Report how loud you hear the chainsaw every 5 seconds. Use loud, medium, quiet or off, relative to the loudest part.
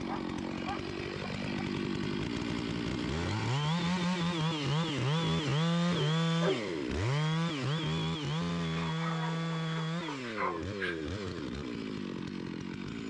loud, loud, medium.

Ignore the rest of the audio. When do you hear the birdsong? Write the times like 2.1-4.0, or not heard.
not heard.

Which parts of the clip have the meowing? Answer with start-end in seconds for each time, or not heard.
not heard.